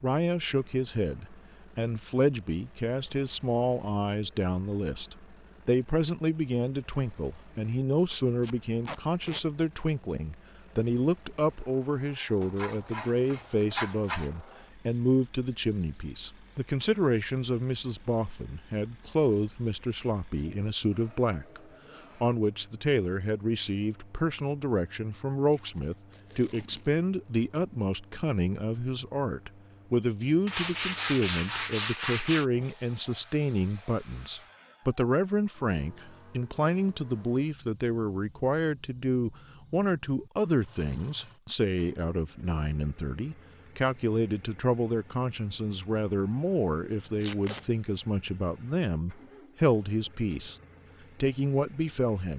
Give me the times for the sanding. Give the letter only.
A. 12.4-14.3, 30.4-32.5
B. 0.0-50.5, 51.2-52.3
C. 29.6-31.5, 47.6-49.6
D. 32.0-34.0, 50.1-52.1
A.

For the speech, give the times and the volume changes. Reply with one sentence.
The speech can be heard from 0.0 to 50.5 s, at a steady volume; and briefly from 51.2 to 52.3 s.